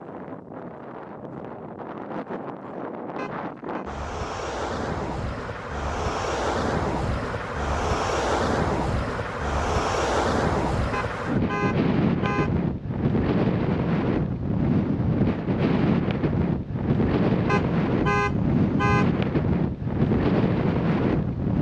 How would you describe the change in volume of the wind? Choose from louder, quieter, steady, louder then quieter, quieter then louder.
louder.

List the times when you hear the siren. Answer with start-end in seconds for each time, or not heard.
not heard.